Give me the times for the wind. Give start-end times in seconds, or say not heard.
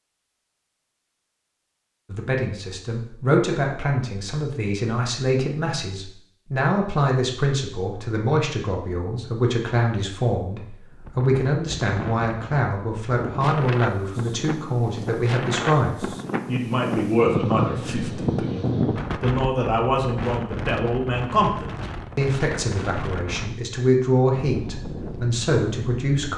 10.9-26.3.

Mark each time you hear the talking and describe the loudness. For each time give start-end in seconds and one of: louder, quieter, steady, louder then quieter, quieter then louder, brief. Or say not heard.
2.1-26.3 steady.